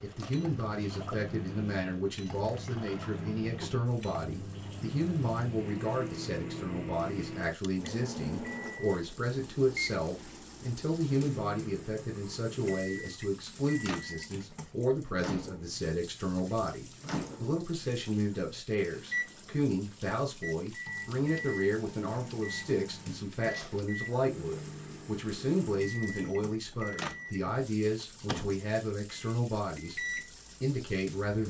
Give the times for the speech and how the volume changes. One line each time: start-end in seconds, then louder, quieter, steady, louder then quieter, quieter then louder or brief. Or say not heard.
0.0-30.0 steady
30.6-31.4 brief.